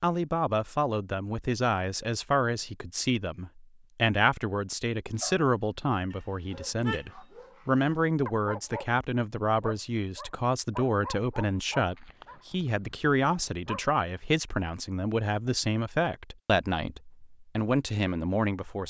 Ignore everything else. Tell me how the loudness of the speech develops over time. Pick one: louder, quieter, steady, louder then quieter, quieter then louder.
steady.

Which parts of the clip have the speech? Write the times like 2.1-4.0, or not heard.
0.0-18.8.